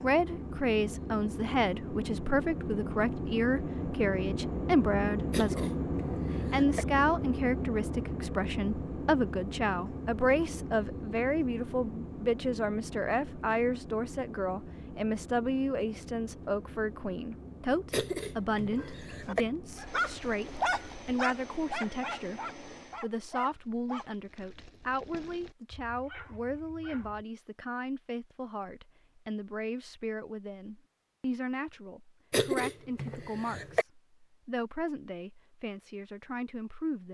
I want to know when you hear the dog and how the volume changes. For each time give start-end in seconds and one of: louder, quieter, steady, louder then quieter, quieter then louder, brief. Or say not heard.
18.8-27.2 quieter.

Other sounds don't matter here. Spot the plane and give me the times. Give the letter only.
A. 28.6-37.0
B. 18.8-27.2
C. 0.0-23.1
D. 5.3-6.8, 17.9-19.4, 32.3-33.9
C.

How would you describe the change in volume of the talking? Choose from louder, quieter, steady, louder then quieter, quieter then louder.
quieter.